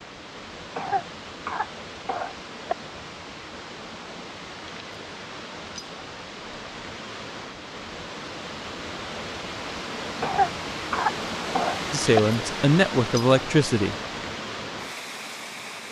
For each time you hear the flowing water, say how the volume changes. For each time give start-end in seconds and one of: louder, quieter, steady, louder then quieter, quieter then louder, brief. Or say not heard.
0.0-15.8 louder.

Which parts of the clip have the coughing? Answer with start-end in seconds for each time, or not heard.
0.8-2.8, 10.2-12.2.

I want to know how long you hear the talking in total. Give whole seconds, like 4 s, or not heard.
2 s.